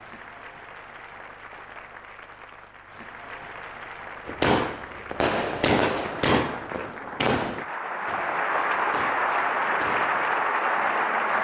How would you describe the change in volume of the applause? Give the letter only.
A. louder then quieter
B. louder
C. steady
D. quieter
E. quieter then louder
B.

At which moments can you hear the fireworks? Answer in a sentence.
The fireworks can be heard from 4.2 to 10.2 s.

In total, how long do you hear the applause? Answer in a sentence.
The applause can be heard for 11 seconds in total.